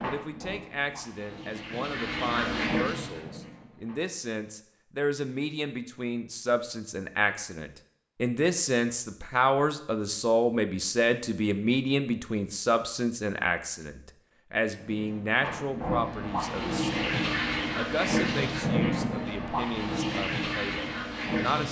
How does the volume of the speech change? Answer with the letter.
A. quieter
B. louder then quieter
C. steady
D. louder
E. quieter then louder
B.